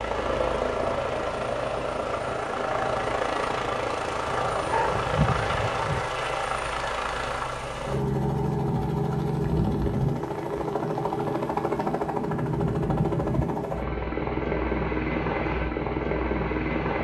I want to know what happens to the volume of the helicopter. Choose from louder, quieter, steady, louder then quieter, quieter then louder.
steady.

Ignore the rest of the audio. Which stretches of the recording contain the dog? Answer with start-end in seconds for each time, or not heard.
4.2-6.0.